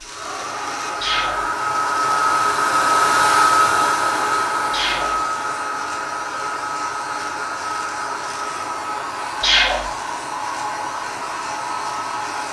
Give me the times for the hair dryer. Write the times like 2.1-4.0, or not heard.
0.0-12.4.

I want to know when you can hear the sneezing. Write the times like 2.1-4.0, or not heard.
1.0-1.4, 4.7-5.2, 9.4-9.9.